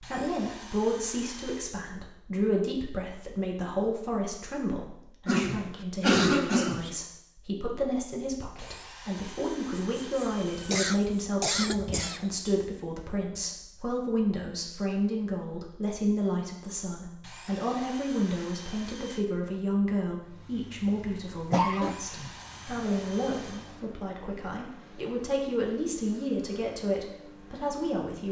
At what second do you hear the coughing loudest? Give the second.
6 s.